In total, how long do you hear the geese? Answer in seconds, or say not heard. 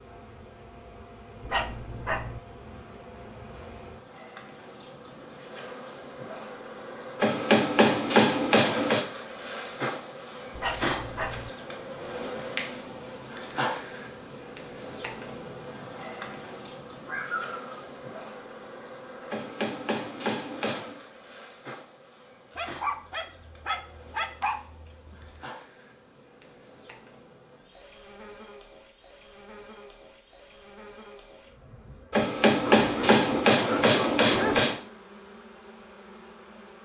not heard.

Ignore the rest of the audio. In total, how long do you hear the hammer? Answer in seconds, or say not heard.
6 s.